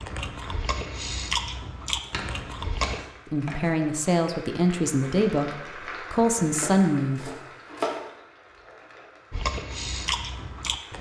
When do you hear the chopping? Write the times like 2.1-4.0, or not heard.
2.0-3.7, 6.5-8.0.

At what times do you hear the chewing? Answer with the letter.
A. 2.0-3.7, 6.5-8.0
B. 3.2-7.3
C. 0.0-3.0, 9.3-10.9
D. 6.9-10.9
C.